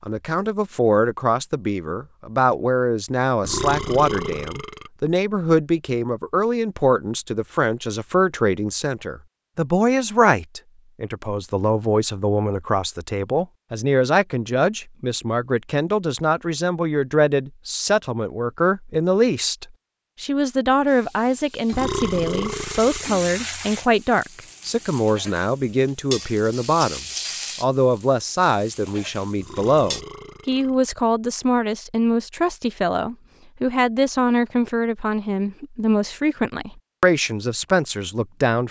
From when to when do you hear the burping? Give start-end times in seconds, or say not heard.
3.4-4.9, 21.7-23.1, 29.4-30.8.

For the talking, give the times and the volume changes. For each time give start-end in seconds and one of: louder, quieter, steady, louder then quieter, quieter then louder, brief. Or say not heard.
0.0-38.6 steady.